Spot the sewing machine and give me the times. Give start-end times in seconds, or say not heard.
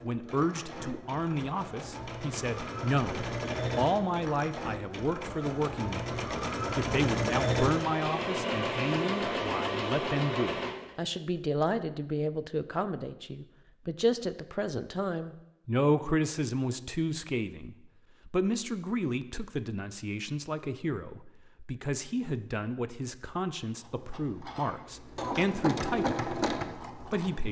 0.0-10.9, 23.9-27.4.